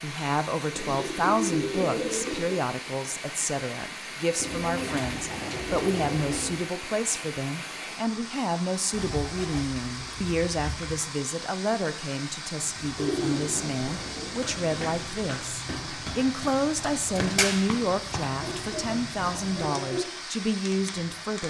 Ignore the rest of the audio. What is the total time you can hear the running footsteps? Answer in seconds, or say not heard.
7 s.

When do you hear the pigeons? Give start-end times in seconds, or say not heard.
0.8-2.5, 4.3-6.7, 8.9-10.9, 12.9-15.0, 18.4-20.0.